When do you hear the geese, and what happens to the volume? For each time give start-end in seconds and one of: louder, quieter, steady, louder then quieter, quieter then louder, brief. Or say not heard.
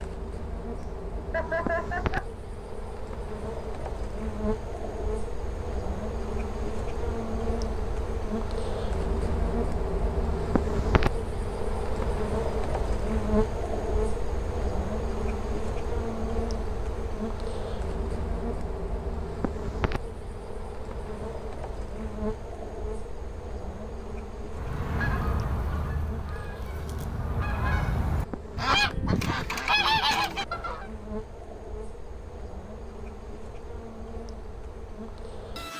24.5-30.9 quieter then louder.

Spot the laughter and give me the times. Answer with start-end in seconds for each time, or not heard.
1.1-2.2.